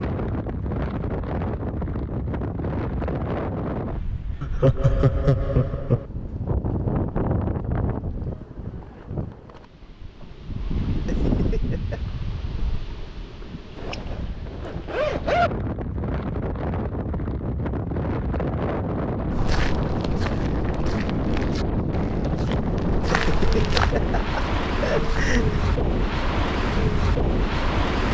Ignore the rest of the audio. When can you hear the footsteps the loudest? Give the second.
24 s.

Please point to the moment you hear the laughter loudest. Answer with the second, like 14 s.
5 s.